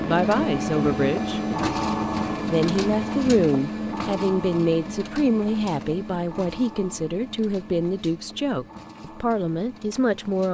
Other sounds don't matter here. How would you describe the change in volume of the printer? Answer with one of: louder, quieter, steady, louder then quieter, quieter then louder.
quieter.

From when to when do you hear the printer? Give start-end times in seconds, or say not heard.
0.0-10.4.